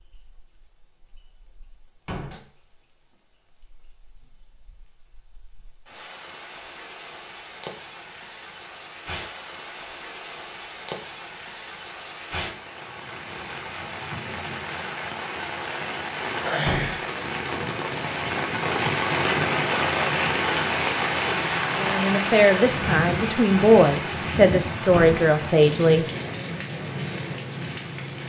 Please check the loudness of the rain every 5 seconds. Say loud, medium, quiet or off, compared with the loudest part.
quiet, quiet, medium, loud, loud, medium.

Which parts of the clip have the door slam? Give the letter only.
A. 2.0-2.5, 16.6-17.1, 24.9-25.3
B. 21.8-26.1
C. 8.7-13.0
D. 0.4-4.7
A.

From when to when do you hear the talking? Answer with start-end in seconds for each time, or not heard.
21.8-26.1.